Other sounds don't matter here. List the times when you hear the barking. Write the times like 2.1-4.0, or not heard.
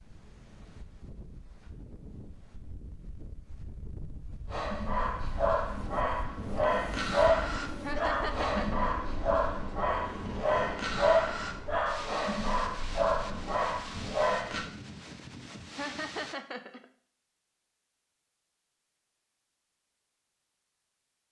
4.5-14.7.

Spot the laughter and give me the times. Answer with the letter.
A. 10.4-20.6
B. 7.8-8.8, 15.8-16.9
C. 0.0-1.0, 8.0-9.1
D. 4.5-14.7
B.